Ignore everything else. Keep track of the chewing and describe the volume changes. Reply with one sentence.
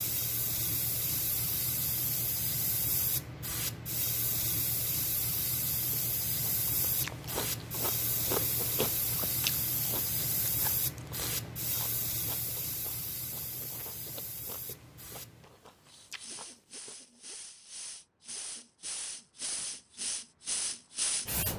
The loudness of the chewing goes down.